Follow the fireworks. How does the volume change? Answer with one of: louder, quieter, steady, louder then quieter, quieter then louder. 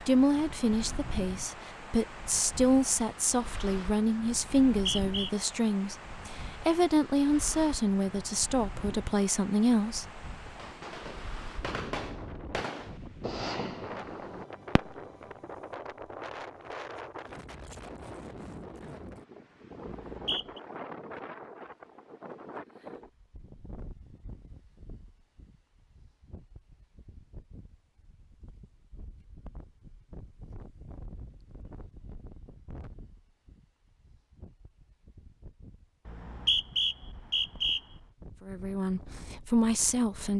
louder then quieter.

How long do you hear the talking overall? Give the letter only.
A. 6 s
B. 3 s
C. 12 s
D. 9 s
C.